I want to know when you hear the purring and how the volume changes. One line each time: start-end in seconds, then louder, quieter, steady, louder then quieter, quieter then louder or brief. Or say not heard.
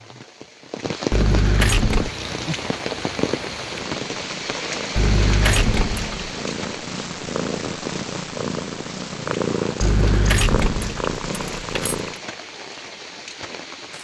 1.9-12.2 louder.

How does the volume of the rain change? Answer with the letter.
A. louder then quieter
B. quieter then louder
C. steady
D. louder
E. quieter
E.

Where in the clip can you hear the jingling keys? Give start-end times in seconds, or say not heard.
1.1-2.1, 5.0-6.3, 9.8-12.0.